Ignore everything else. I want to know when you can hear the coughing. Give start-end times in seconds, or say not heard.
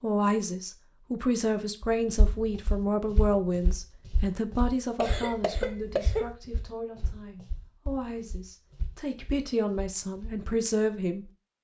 5.0-6.3.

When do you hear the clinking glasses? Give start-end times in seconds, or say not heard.
not heard.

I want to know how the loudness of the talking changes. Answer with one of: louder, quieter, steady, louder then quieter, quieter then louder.
quieter then louder.